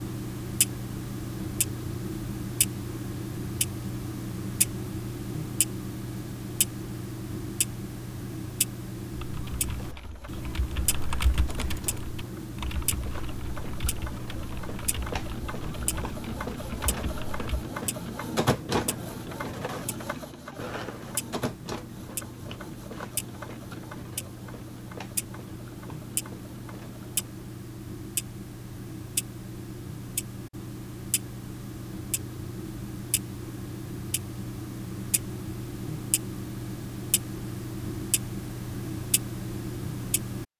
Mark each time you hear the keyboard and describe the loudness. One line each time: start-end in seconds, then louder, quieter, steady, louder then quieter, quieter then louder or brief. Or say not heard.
9.1-17.6 louder then quieter.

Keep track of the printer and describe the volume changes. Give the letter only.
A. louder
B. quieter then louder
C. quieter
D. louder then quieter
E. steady
D.